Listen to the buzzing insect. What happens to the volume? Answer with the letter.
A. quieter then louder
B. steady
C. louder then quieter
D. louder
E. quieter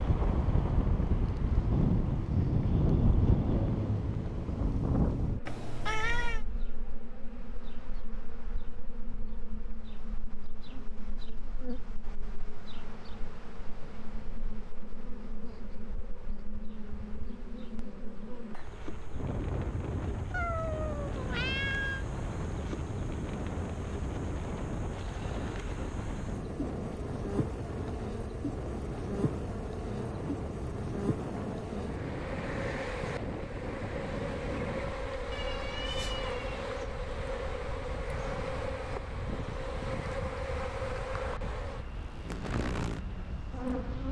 D.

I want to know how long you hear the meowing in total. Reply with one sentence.
You can hear the meowing for 4 seconds altogether.